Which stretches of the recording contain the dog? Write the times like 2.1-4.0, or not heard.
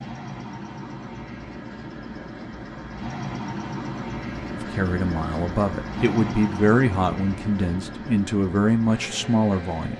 not heard.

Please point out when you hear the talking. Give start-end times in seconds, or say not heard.
4.5-9.9.